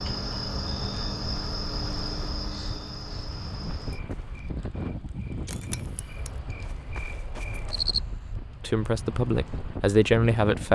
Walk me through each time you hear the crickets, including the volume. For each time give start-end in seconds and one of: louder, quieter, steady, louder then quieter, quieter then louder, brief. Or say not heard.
0.0-8.0 quieter.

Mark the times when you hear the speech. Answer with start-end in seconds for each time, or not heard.
8.6-10.7.